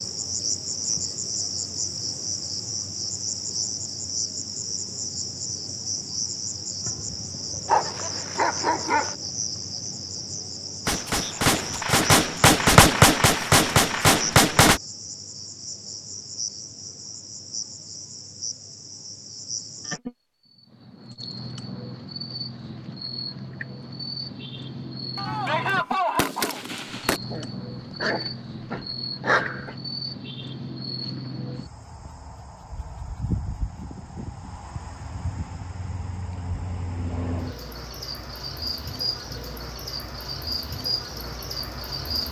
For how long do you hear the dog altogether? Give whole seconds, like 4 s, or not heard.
4 s.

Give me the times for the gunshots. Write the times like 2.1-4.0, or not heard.
10.8-14.8, 25.1-27.2.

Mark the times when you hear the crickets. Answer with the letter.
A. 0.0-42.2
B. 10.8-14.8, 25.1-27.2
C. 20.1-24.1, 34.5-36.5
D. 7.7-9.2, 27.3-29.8
A.